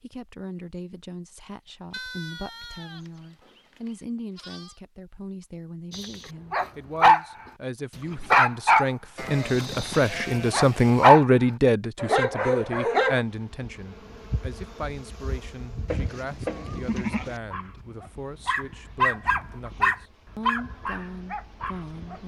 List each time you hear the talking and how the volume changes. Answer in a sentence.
You can hear the talking from 0.0 to 22.2 s, getting louder then quieter.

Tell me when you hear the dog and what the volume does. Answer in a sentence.
You can hear the dog briefly from 5.9 to 7.2 s; briefly from 8.3 to 11.2 s; briefly from 12.0 to 13.2 s; and from 17.3 to 22.2 s, getting louder then quieter.